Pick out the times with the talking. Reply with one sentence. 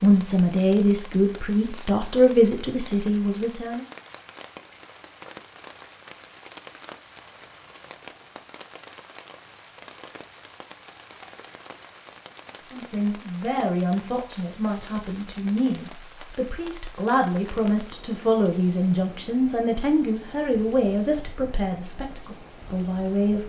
The talking can be heard from 0.0 to 3.9 s and from 12.7 to 23.4 s.